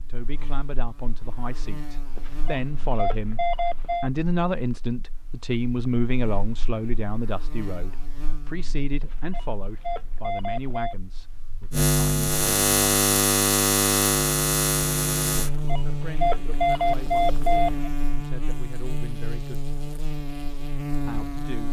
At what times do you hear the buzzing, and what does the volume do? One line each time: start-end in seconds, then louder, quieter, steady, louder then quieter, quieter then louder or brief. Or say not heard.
0.0-21.6 louder then quieter.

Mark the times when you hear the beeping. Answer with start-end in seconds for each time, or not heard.
2.1-4.1, 9.0-10.9, 15.3-17.9.